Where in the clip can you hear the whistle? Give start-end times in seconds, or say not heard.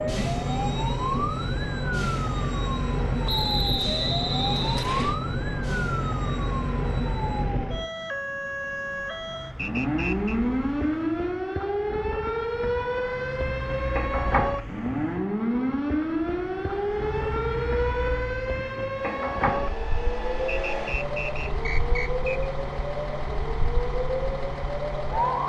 3.2-5.2, 9.6-10.4, 20.4-22.5.